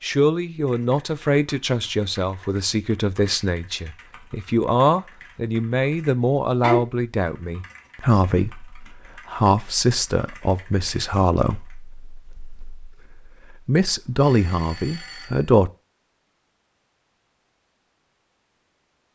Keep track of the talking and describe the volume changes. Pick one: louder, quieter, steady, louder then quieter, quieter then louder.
steady.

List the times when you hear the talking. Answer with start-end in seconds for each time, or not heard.
0.0-15.7.